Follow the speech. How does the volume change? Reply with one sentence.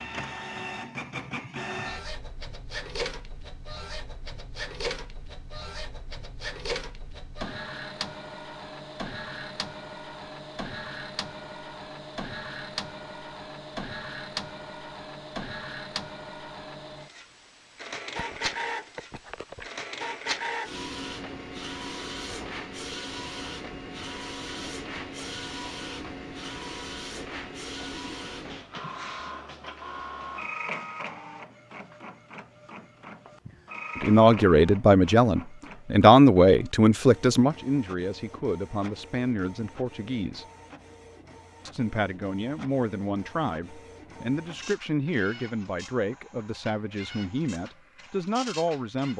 The volume of the speech goes down.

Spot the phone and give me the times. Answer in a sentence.
The phone can be heard from 18.1 to 19.7 s.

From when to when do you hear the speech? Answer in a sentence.
You can hear the speech from 34.0 to 40.5 s and from 41.6 to 49.1 s.